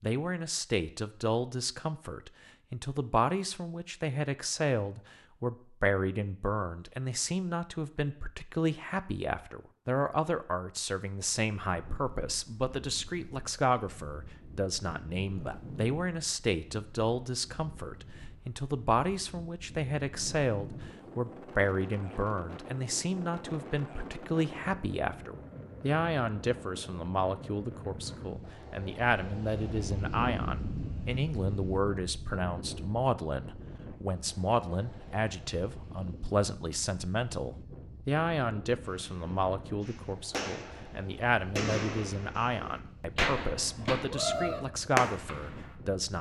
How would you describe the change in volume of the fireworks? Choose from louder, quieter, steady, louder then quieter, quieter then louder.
louder.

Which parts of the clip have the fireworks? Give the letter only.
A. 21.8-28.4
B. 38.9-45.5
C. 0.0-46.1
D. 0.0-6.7
B.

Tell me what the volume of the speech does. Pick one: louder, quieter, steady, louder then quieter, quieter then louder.
steady.